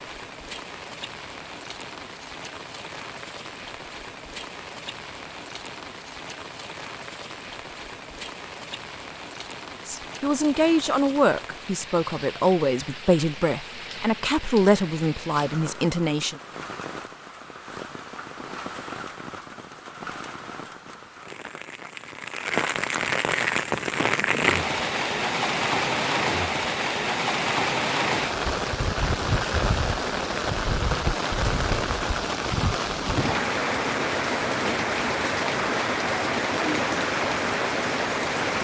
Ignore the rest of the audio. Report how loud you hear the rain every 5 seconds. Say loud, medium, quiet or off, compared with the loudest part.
quiet, quiet, quiet, quiet, loud, loud, loud, loud.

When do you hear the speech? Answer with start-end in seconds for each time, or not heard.
9.8-16.4.